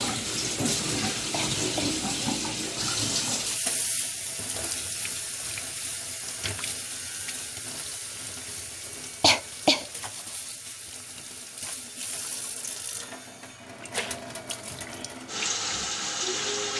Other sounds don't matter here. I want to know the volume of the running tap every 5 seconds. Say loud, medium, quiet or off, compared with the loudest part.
loud, medium, medium, loud.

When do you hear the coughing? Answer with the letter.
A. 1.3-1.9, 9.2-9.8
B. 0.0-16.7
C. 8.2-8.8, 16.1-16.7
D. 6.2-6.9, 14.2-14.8
A.